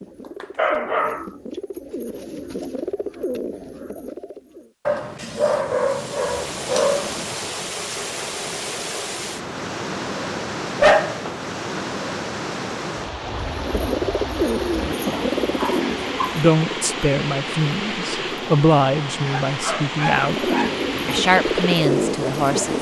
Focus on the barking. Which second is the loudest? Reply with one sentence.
The loudest moment of the barking is at 11 seconds.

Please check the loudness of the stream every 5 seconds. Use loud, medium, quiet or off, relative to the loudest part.
off, loud, loud, loud, loud.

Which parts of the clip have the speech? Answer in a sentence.
The speech can be heard from 16.4 to 22.7 s.